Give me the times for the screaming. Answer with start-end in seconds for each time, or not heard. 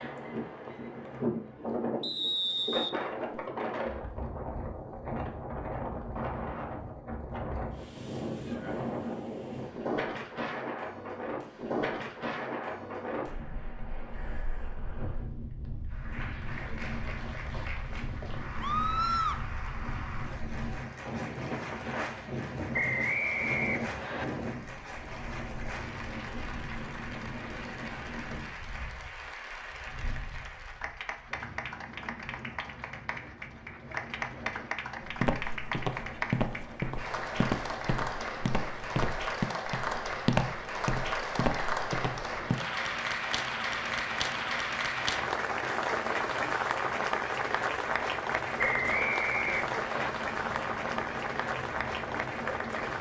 18.6-19.4.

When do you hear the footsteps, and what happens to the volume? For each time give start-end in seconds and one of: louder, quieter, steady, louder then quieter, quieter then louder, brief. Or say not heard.
35.0-42.5 steady.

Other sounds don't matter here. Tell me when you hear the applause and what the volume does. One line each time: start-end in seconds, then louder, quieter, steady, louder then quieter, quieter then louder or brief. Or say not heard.
15.9-52.9 louder.